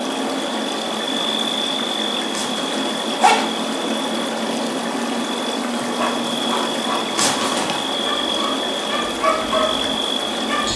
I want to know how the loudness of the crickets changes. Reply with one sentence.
The loudness of the crickets stays about the same.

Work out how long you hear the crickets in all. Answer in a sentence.
You can hear the crickets for 11 seconds altogether.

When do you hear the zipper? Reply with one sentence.
The zipper can be heard from 2.3 to 3.7 s and from 7.2 to 7.9 s.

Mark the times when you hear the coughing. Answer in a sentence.
You can't hear the coughing here.